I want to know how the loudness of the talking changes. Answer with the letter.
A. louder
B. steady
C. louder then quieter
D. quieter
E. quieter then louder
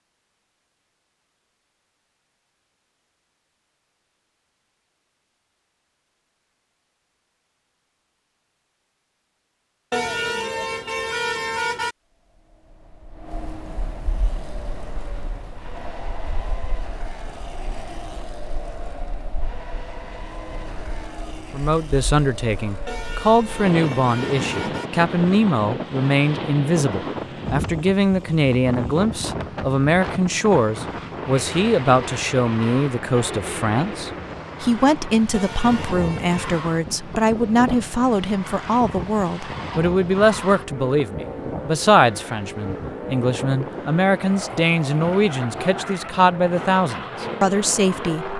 B.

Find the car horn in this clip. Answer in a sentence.
The car horn can be heard from 9.9 to 11.9 s, from 22.9 to 24.9 s and from 35.3 to 36.6 s.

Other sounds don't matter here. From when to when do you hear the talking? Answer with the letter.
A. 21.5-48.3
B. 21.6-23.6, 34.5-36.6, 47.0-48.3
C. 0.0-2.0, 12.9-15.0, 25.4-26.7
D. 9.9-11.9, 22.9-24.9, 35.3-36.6
A.